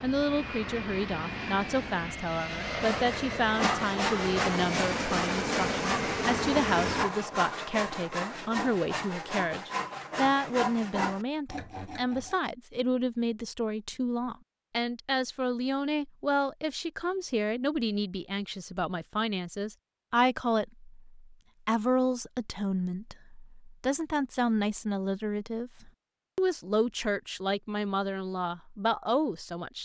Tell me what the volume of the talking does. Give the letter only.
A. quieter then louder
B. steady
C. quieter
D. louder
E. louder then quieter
B.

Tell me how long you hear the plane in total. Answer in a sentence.
The plane can be heard for 7 seconds in total.